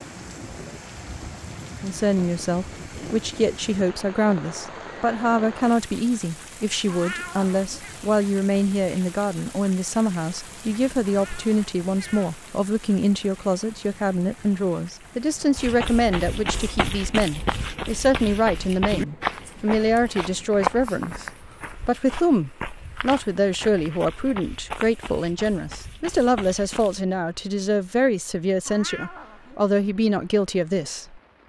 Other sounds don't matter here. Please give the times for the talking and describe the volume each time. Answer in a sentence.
You can hear the talking from 1.8 to 21.2 s, at a steady volume; and from 21.9 to 31.2 s, at a steady volume.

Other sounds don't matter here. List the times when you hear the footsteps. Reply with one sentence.
The footsteps can be heard from 15.6 to 27.1 s.